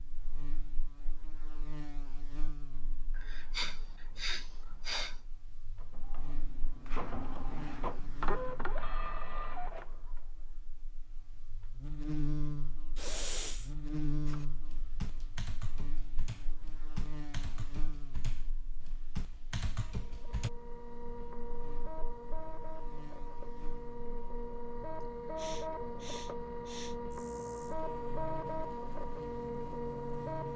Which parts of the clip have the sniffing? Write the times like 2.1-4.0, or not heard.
3.1-5.2, 12.9-13.7, 25.0-26.9.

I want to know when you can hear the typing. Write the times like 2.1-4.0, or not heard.
14.2-20.5.